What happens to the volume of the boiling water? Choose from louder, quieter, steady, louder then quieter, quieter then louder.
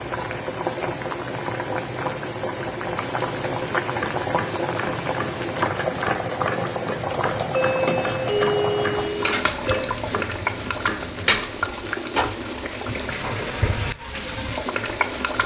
steady.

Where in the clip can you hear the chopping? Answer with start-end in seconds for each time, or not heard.
3.8-11.5.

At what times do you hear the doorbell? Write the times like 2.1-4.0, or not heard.
7.5-9.9.